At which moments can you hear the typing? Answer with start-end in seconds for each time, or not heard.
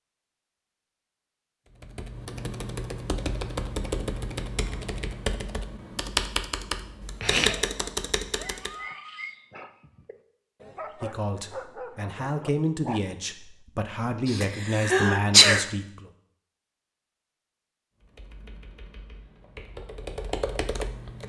1.8-8.8, 18.1-21.2.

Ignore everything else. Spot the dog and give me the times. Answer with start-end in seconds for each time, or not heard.
7.5-13.6.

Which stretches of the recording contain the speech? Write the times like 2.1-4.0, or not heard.
11.0-16.1.